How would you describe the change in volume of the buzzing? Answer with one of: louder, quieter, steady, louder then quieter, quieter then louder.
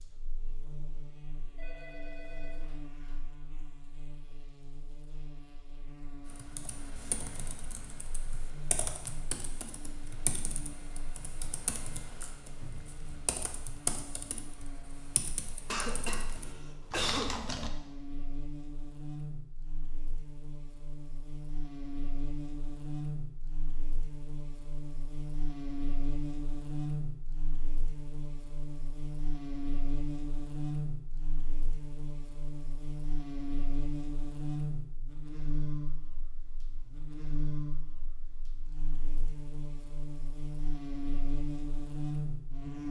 louder.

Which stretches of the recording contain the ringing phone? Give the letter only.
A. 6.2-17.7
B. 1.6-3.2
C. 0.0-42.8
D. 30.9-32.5
B.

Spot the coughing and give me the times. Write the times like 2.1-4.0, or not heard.
15.7-17.4.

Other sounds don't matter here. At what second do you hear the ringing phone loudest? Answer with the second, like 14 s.
2 s.